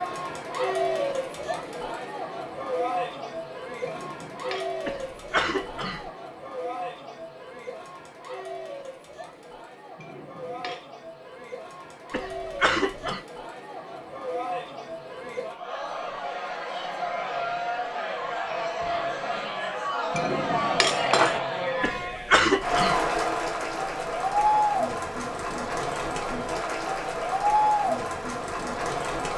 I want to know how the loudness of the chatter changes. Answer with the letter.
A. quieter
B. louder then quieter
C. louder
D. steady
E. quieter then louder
E.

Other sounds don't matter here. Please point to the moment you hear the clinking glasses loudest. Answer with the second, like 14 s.
21 s.